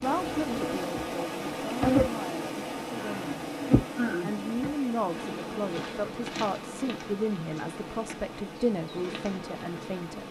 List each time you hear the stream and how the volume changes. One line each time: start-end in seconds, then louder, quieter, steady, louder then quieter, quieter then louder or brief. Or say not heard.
0.0-10.2 quieter.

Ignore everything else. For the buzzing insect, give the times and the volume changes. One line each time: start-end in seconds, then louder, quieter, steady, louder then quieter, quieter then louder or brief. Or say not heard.
0.0-10.2 quieter.